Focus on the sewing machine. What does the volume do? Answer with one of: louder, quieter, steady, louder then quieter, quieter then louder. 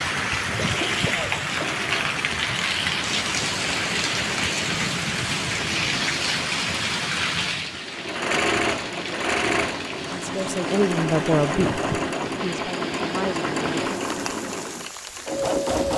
louder.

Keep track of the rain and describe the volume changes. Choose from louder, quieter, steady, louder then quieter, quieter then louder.
quieter.